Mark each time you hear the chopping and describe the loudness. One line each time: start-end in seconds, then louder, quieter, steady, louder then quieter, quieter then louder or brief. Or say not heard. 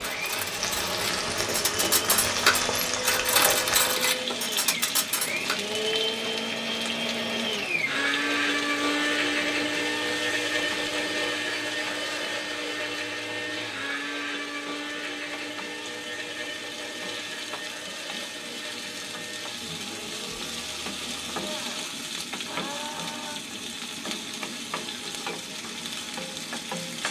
not heard.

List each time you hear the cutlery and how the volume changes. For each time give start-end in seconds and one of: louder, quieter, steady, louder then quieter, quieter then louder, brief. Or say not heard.
0.0-5.5 louder then quieter.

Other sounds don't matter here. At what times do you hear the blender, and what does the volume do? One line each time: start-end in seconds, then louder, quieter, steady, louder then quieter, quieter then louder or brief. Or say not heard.
0.0-26.9 louder then quieter.